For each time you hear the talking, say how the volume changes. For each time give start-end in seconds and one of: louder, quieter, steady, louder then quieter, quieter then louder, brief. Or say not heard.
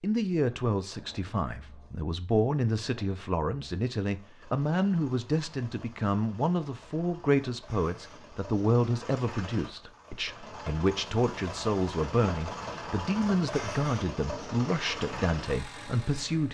0.0-16.4 steady.